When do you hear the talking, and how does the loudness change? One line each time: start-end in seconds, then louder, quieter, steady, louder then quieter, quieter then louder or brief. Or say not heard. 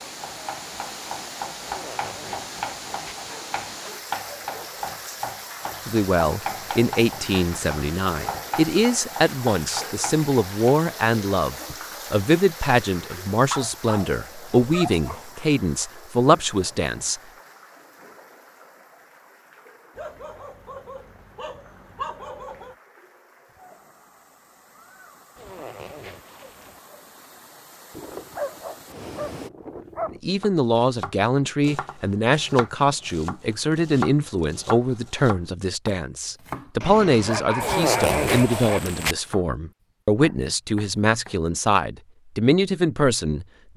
5.8-17.2 steady
30.1-43.5 steady.